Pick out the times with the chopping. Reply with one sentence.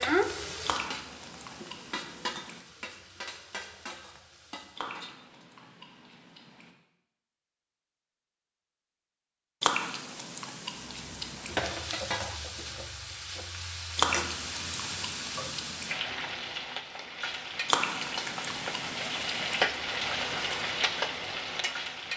You can't hear the chopping here.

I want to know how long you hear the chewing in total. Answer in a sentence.
The chewing can be heard for 10 seconds in total.